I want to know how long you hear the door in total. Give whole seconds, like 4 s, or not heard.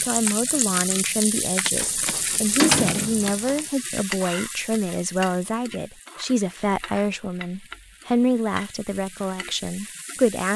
2 s.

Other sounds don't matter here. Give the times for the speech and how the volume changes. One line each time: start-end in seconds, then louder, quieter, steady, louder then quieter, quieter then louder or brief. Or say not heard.
0.0-10.5 steady.